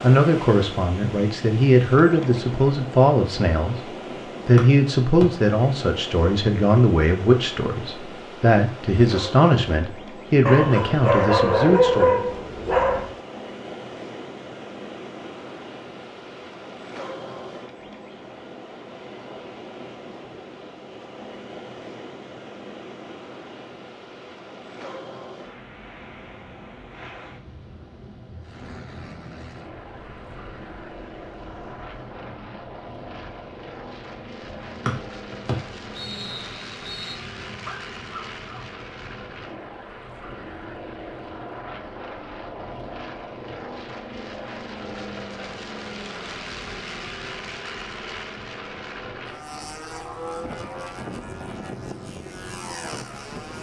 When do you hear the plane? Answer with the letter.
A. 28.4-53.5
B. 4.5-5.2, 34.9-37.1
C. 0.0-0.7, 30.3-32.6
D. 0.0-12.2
A.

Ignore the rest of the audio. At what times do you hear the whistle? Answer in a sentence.
You can hear the whistle from 4.5 to 5.2 s and from 34.9 to 37.1 s.